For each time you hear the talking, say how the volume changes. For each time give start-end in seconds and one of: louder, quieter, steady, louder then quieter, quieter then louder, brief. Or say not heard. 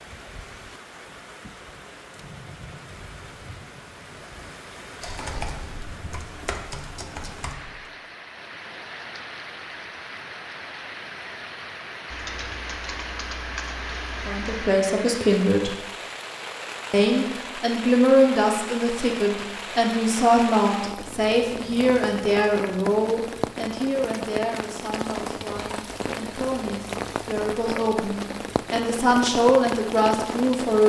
14.2-15.8 brief
16.9-30.8 quieter then louder.